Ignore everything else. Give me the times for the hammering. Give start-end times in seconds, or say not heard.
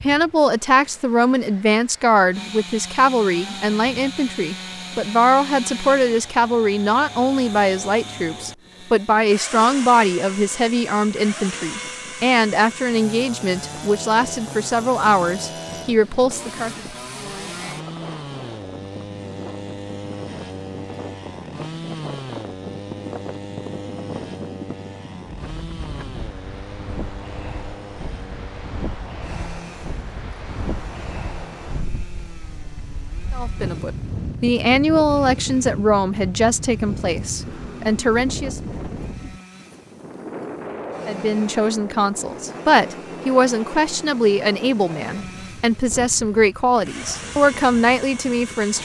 not heard.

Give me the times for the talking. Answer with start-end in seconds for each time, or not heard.
0.0-16.8, 33.3-38.6, 41.0-48.7.